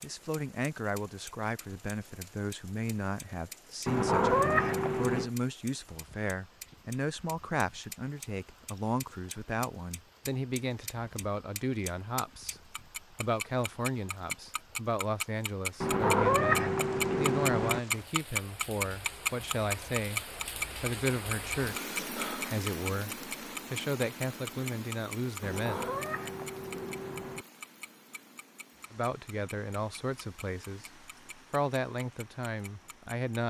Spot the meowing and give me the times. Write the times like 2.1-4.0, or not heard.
3.9-5.3, 15.8-17.8, 25.4-27.4.